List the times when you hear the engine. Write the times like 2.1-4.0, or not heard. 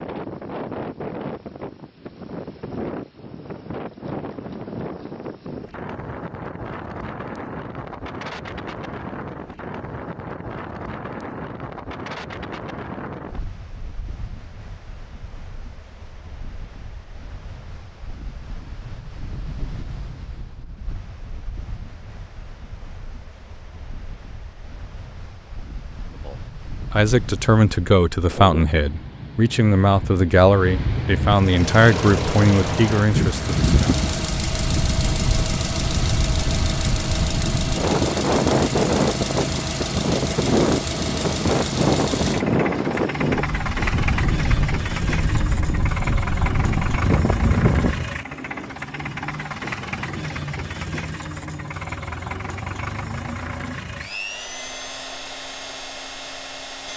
31.3-56.9.